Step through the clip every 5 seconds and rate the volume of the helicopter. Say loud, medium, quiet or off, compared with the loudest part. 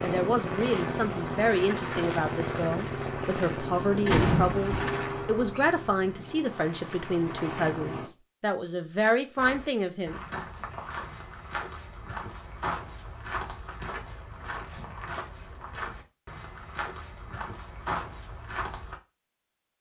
loud, medium, off, off.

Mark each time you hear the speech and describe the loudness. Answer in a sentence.
The speech can be heard from 0.0 to 10.2 s, at a steady volume.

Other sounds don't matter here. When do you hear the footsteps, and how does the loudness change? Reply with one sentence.
You can hear the footsteps from 9.3 to 18.9 s, at a steady volume.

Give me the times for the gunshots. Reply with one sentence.
You can hear the gunshots from 4.0 to 5.0 s.